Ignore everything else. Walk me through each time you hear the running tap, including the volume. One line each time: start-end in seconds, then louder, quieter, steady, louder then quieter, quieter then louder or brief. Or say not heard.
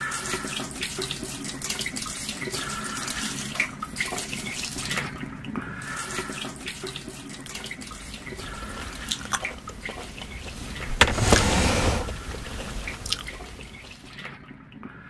0.0-15.0 quieter.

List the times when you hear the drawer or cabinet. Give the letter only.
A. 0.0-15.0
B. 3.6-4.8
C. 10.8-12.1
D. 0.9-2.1
C.